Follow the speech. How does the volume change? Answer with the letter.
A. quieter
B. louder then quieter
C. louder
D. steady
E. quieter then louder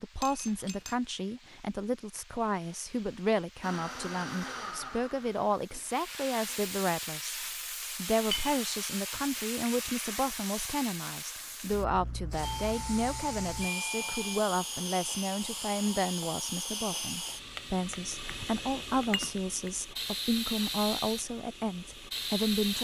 D.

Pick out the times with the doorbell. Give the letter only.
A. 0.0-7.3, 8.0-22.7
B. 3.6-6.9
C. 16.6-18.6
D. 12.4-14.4
D.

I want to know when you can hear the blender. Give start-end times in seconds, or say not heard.
3.6-6.9.